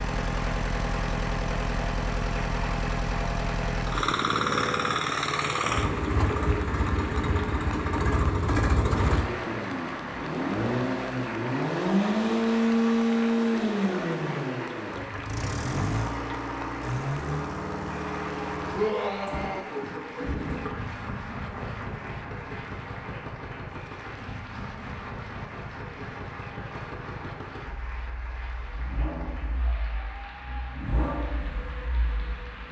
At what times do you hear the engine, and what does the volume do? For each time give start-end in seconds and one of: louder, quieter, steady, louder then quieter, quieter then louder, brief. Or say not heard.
0.0-32.6 quieter.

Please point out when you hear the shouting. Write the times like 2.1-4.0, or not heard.
18.7-19.6.